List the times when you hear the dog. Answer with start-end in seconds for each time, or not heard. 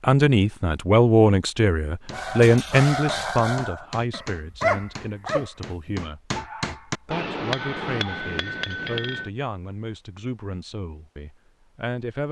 2.1-8.3.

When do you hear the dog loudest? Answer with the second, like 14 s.
5 s.